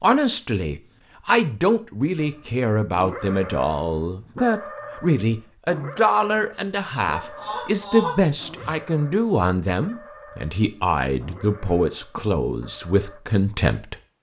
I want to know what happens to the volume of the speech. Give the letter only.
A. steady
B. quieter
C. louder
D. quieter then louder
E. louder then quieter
A.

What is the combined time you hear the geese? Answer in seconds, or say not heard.
2 s.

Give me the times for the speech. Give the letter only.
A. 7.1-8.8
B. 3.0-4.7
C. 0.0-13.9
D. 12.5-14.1
C.